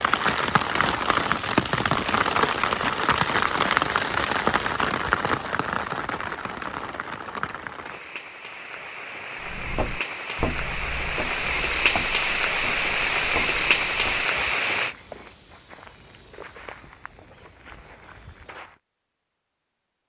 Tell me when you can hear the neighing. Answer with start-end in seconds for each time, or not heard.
not heard.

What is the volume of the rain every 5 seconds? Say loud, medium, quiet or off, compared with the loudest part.
loud, medium, loud, off.